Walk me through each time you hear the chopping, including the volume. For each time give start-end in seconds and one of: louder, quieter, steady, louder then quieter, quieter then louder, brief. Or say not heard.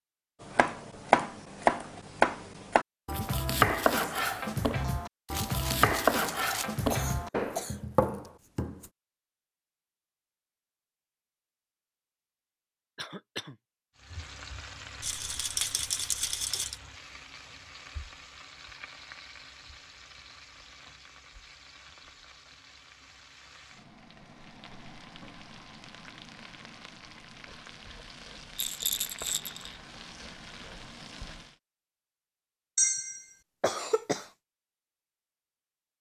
0.4-8.8 quieter.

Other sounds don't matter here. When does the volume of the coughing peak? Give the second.
33 s.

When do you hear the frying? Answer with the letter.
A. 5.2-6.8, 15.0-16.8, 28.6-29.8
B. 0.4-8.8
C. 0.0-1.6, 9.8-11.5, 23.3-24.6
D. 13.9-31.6
D.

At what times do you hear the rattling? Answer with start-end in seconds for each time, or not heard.
5.2-6.8, 15.0-16.8, 28.6-29.8.